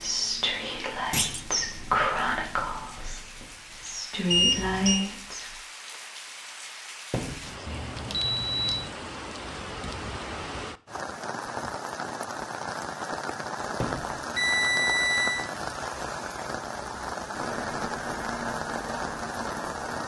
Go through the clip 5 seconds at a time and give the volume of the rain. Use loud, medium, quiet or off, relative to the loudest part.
quiet, medium, loud, loud.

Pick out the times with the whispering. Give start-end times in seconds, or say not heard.
0.0-5.5.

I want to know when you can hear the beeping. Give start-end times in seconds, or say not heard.
4.3-5.0, 7.7-8.8, 14.3-15.5.